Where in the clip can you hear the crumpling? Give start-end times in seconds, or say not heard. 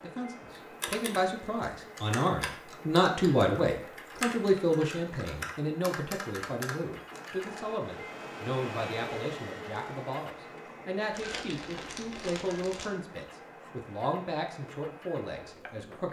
11.1-12.9.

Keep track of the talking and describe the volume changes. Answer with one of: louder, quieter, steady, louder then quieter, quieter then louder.
quieter.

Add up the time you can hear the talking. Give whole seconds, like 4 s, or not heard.
16 s.